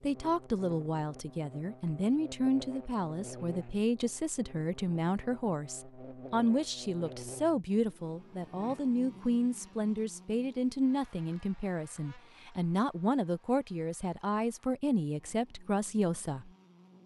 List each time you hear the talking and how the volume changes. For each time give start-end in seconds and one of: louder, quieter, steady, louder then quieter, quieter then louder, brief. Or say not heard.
0.0-16.5 steady.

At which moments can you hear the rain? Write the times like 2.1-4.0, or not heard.
not heard.